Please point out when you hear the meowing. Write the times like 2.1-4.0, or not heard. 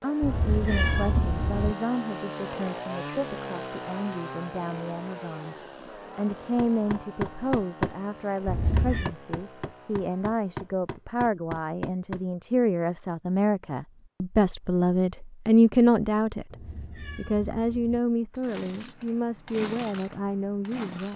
0.2-1.8, 8.4-9.1, 16.5-18.0.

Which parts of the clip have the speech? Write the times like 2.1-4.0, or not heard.
0.0-5.5, 6.2-16.6, 17.1-21.1.